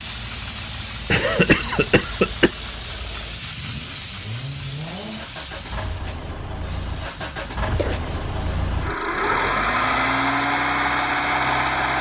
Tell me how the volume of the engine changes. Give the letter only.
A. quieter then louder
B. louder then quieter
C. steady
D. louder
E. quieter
D.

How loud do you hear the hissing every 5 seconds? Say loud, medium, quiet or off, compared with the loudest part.
loud, medium, medium.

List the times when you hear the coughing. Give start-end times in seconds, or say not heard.
1.1-2.5, 7.2-8.1.